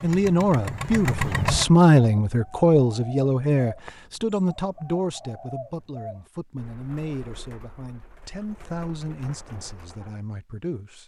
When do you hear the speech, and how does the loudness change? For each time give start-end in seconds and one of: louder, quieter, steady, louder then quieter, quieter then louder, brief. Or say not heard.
0.0-11.0 quieter.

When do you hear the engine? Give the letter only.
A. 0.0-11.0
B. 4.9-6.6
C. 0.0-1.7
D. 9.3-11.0
C.